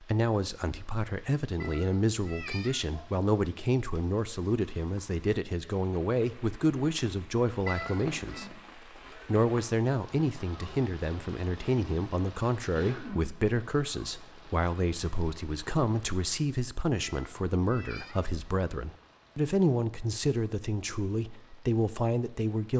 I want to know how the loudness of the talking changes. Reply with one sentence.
The loudness of the talking stays about the same.